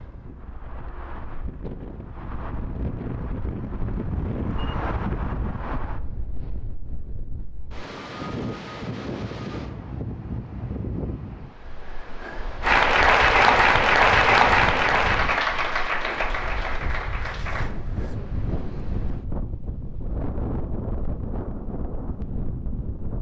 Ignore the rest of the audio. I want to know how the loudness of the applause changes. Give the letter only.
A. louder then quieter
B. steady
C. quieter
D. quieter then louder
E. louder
C.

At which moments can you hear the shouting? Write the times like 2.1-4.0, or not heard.
not heard.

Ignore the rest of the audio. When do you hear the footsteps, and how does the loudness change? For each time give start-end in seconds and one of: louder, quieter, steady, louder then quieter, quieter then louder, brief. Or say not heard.
not heard.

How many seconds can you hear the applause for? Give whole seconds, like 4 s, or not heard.
5 s.